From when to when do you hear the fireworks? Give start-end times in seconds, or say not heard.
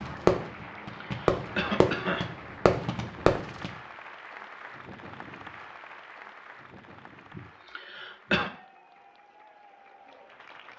0.0-3.7.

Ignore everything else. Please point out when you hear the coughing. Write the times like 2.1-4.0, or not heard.
0.6-2.2, 7.3-8.5.